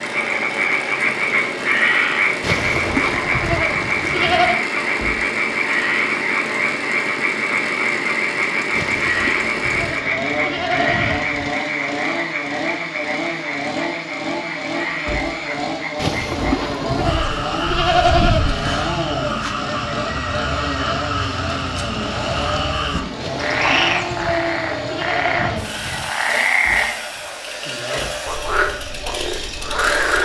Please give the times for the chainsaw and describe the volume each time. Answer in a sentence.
The chainsaw can be heard from 0.0 to 30.2 s, at a steady volume.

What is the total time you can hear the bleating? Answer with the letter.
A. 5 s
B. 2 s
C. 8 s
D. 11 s
D.